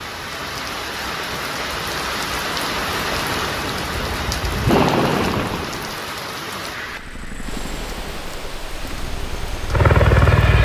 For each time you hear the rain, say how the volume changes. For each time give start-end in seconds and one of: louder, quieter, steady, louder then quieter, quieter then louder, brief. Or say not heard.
0.0-10.5 quieter.